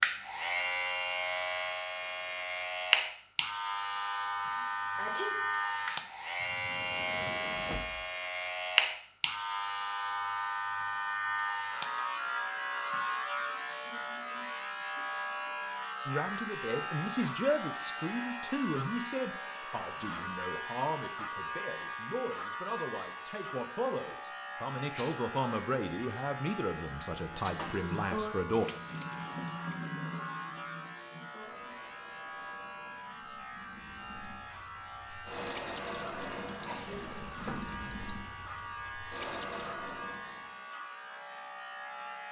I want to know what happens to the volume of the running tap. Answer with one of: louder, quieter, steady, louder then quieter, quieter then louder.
quieter then louder.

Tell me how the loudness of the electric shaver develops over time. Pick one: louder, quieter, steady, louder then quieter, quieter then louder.
quieter.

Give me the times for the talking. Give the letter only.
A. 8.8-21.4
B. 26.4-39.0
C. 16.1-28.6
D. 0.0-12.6
C.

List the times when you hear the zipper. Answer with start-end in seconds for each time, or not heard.
not heard.